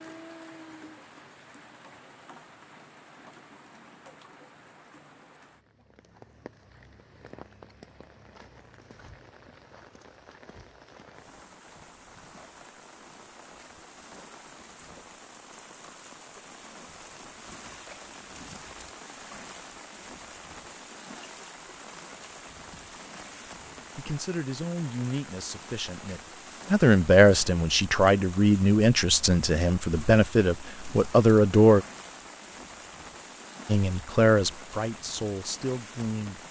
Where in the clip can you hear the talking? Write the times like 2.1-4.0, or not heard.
23.9-31.9, 33.6-36.4.